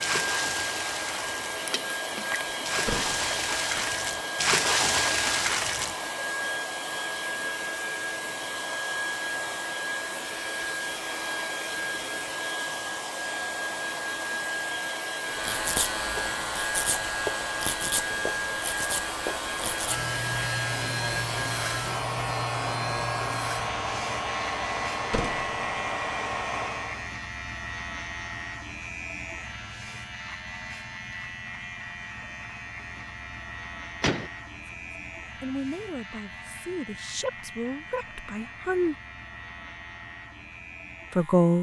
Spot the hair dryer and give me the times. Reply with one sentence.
The hair dryer can be heard from 0.0 to 27.1 s.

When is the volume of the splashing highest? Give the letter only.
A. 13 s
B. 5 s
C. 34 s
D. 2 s
B.